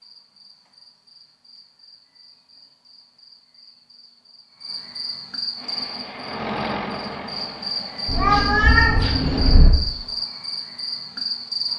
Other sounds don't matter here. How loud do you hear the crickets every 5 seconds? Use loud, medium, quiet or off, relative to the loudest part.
quiet, loud, loud.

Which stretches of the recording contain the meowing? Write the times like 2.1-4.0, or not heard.
8.1-9.7.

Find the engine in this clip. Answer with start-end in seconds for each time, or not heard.
5.5-8.3.